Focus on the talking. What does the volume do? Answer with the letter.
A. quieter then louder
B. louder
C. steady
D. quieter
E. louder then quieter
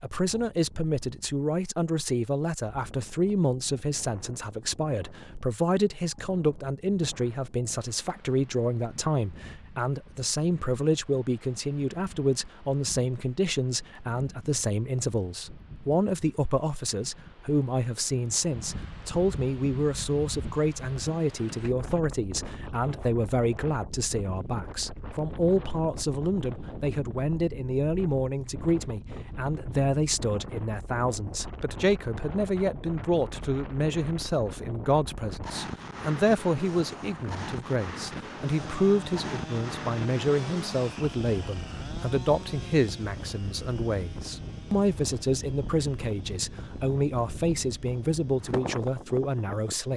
C.